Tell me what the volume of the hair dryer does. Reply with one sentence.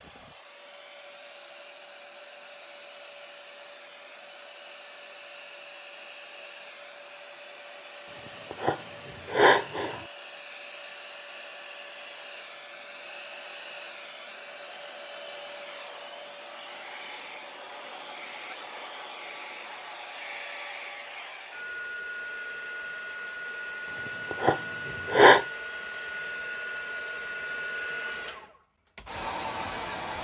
The loudness of the hair dryer goes up.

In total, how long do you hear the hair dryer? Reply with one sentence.
The hair dryer can be heard for 30 seconds in total.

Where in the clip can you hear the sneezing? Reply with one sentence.
You can hear the sneezing from 8.1 to 10.0 s and from 23.9 to 25.4 s.